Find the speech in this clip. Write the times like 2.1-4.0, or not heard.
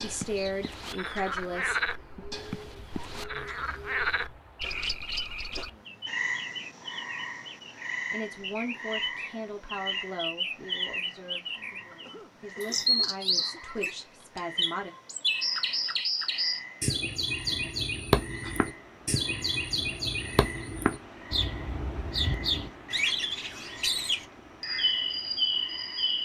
0.0-2.2, 8.1-14.9.